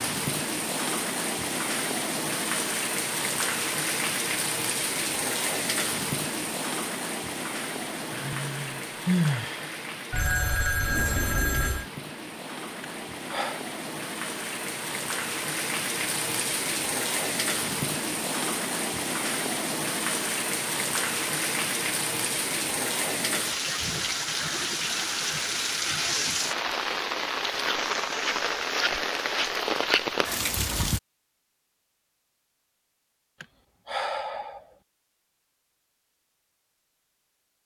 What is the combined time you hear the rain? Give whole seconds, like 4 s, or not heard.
31 s.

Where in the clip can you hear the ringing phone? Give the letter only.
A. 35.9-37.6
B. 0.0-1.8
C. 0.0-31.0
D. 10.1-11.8
D.